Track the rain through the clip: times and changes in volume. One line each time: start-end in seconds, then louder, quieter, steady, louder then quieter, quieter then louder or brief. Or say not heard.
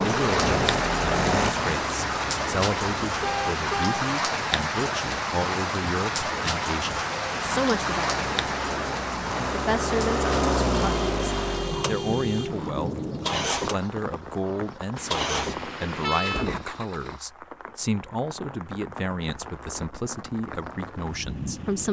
0.0-21.8 quieter.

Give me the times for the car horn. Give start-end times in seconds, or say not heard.
3.2-4.0, 10.7-12.7, 14.9-16.5.